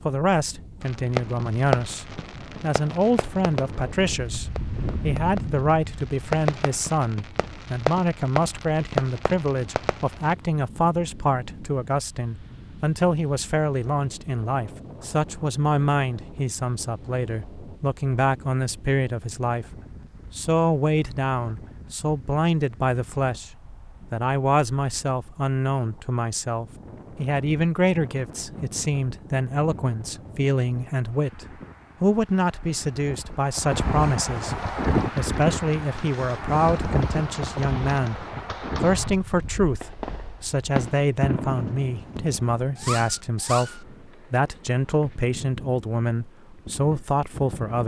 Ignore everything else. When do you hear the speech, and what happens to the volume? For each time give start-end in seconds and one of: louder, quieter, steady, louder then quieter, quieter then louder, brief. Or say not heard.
0.0-19.6 steady
20.4-47.8 steady.